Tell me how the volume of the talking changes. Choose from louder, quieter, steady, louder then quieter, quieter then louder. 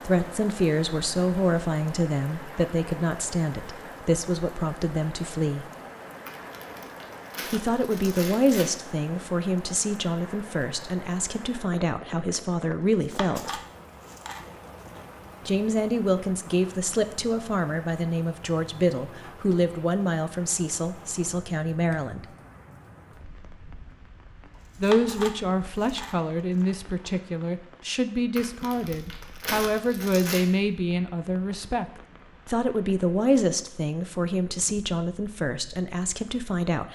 steady.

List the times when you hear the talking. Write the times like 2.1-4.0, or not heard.
0.1-5.7, 7.5-13.6, 15.4-22.2, 24.8-36.8.